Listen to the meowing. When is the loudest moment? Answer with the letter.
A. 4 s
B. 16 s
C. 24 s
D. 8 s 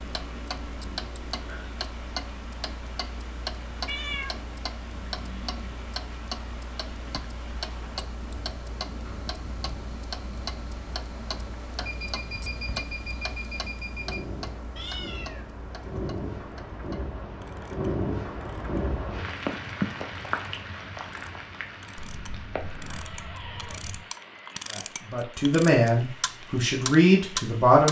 A.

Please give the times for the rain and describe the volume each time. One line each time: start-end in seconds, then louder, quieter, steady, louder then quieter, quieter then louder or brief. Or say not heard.
0.0-27.8 louder then quieter.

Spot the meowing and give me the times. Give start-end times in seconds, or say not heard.
3.9-4.4, 14.8-16.1, 21.9-24.1.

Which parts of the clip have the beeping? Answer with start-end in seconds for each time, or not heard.
11.8-14.2.